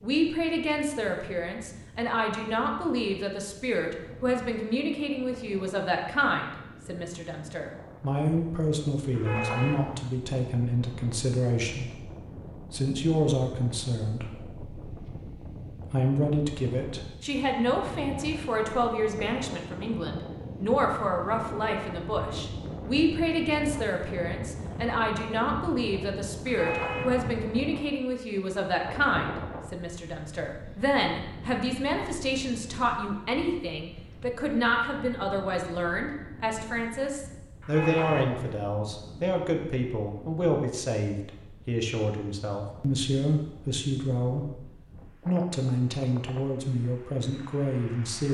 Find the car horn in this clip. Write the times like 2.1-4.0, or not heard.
9.1-10.1, 26.4-27.3, 37.6-38.6.